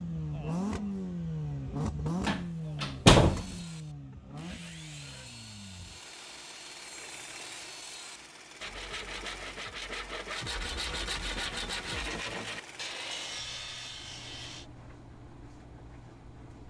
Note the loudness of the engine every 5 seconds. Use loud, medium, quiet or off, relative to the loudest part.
loud, quiet, quiet, quiet.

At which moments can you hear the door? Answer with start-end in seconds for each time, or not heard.
2.2-3.5.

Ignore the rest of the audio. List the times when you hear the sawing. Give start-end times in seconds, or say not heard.
3.1-14.7.